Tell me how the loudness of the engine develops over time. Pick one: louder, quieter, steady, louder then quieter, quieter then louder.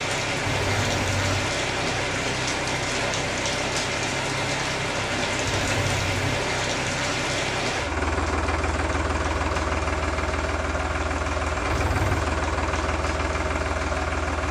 louder.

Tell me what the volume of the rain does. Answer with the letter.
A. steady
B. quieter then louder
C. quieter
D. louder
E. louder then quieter
C.